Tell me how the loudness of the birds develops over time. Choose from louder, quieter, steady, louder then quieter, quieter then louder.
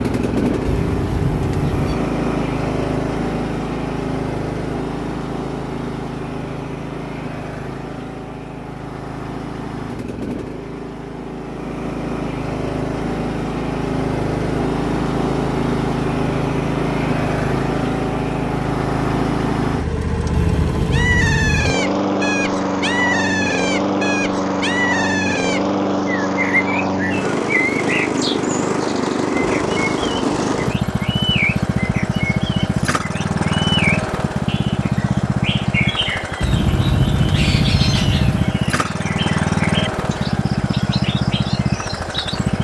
quieter.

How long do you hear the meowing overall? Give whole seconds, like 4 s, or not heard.
5 s.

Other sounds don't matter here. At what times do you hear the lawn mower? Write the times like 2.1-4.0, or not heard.
0.0-42.5.